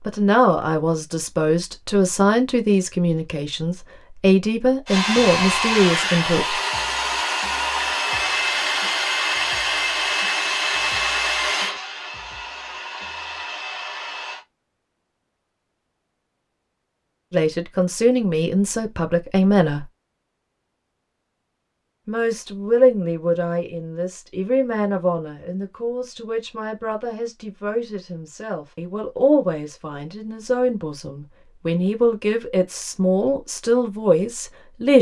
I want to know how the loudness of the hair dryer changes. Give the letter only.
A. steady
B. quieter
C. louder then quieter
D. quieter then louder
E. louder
B.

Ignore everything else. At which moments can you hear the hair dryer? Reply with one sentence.
You can hear the hair dryer from 4.8 to 14.4 s.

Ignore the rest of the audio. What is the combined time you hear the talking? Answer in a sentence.
You can hear the talking for 22 seconds altogether.